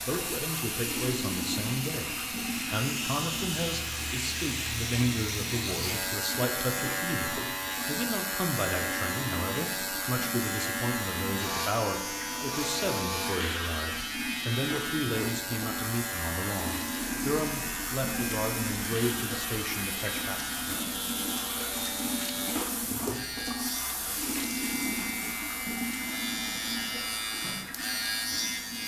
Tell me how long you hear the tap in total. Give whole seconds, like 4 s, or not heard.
29 s.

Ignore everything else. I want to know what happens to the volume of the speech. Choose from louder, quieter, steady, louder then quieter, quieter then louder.
steady.